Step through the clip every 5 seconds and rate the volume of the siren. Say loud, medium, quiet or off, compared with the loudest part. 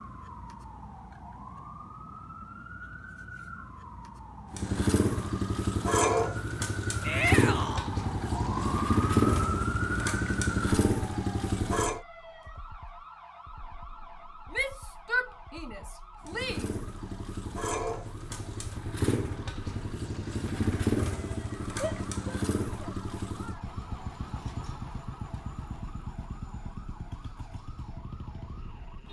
medium, loud, medium, quiet, quiet, quiet.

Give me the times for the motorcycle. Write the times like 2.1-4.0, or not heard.
4.5-12.0, 16.2-29.0.